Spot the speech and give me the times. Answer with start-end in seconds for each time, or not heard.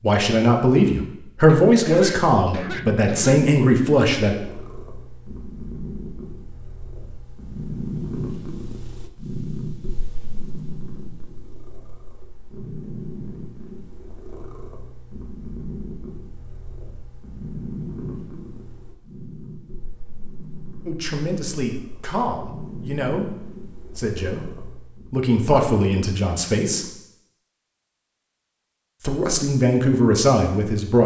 0.0-4.3, 20.9-26.9, 29.0-31.0.